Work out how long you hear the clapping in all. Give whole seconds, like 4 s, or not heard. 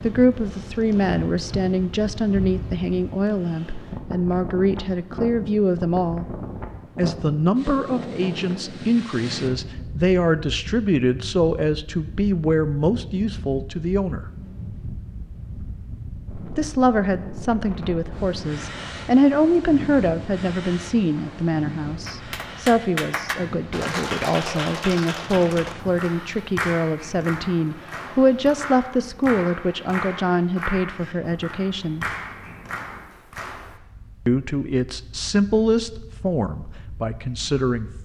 12 s.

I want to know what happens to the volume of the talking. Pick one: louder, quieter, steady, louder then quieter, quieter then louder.
steady.